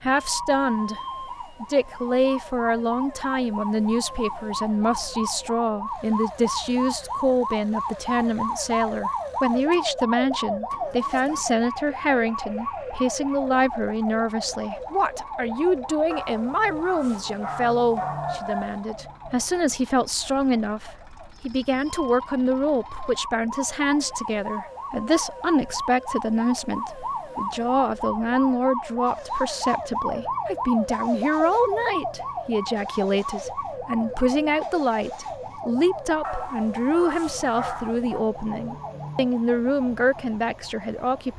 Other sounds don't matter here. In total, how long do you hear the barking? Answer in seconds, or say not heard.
5 s.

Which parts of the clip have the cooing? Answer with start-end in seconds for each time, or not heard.
not heard.